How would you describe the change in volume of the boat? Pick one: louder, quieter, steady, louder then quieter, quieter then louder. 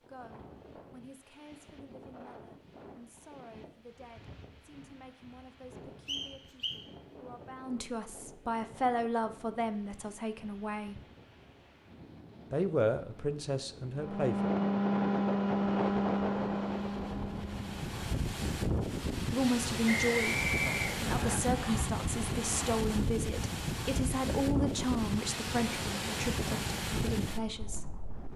quieter.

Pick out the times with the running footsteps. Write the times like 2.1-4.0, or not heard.
not heard.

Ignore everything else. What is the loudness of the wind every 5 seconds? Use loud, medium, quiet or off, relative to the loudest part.
quiet, quiet, quiet, loud, loud, loud.